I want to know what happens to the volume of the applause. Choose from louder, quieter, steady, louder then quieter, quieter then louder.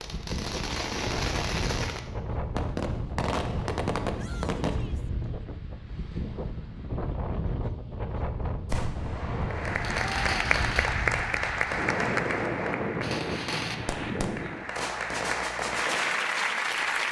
quieter then louder.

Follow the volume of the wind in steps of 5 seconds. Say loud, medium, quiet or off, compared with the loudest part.
loud, loud, loud, off.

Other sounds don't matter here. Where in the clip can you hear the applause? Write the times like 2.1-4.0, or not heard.
9.4-17.0.